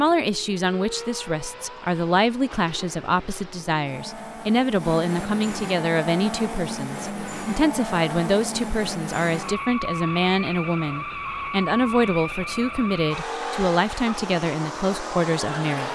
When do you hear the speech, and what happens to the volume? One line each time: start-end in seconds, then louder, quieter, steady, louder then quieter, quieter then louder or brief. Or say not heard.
0.0-15.8 steady.